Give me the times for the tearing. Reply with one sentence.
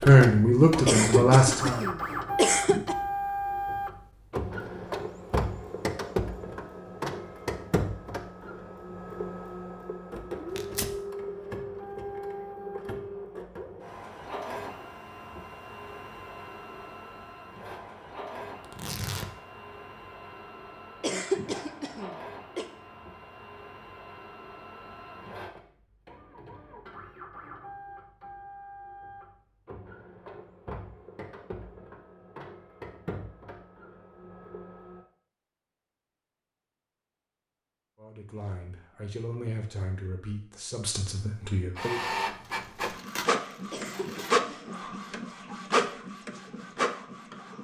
The tearing can be heard from 10.5 to 11.0 s, from 18.6 to 19.3 s and from 42.4 to 44.4 s.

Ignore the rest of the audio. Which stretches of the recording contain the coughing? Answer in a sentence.
You can hear the coughing from 0.8 to 3.0 s, from 21.0 to 22.6 s and from 43.7 to 44.9 s.